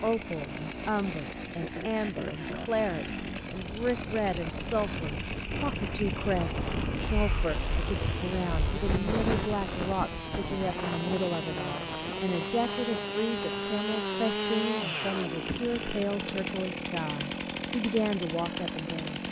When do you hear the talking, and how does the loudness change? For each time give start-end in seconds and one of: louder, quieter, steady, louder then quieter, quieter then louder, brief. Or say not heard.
0.0-19.2 steady.